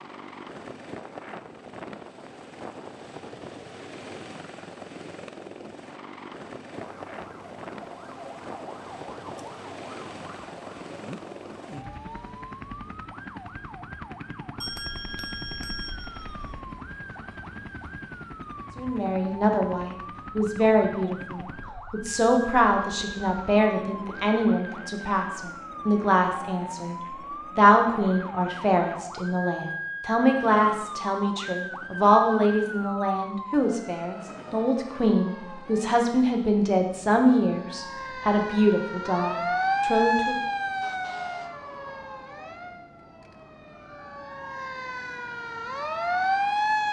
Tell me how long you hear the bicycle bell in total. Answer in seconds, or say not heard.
2 s.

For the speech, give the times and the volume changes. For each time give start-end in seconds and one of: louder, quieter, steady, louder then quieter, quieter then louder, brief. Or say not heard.
18.8-40.4 steady.